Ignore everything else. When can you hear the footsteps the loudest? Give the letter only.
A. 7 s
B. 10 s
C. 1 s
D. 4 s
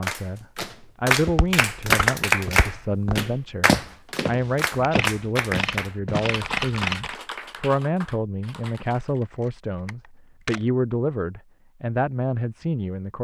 D.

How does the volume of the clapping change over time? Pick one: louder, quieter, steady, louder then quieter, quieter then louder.
quieter.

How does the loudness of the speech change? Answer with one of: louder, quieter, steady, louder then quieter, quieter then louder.
steady.